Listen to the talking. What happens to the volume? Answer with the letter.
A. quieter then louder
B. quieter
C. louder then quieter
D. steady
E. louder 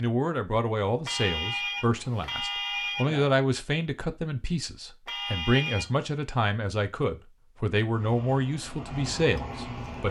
D.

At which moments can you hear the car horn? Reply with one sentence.
The car horn can be heard from 1.1 to 3.3 s and from 5.0 to 6.1 s.